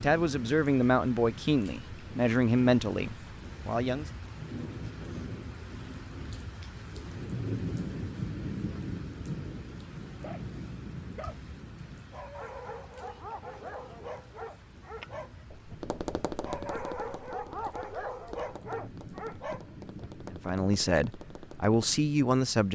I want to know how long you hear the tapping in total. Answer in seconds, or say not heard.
7 s.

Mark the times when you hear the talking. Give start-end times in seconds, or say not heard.
0.0-4.0, 20.3-22.7.